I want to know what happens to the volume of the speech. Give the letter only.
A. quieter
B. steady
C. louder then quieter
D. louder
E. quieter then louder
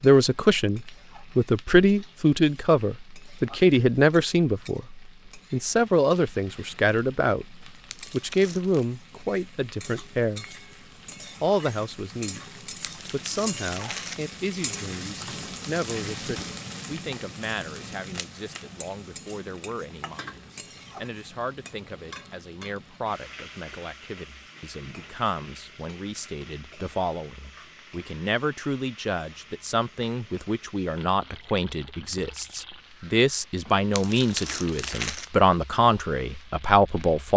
E.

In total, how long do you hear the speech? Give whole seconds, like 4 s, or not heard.
36 s.